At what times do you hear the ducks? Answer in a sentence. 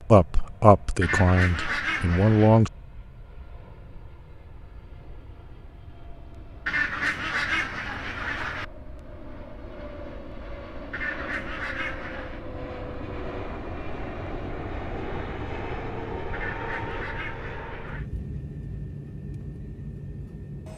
The ducks can be heard from 1.0 to 2.6 s, from 6.7 to 8.7 s, from 10.9 to 12.4 s and from 16.3 to 18.1 s.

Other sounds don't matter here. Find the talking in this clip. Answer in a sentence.
The talking can be heard from 0.1 to 2.7 s.